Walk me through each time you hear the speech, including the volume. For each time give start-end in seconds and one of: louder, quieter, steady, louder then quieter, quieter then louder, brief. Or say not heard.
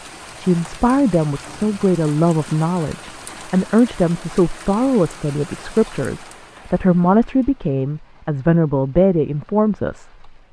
0.3-10.3 steady.